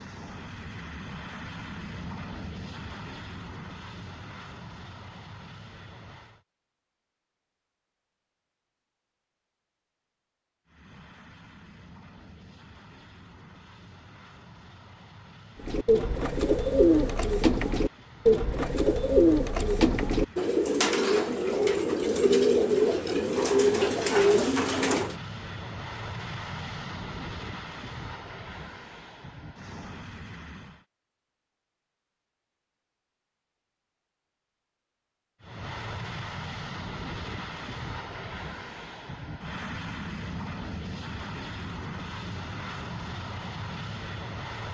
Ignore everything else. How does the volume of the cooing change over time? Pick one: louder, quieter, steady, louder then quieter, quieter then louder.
steady.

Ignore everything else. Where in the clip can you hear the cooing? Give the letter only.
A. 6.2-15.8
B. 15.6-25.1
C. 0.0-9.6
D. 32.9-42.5
B.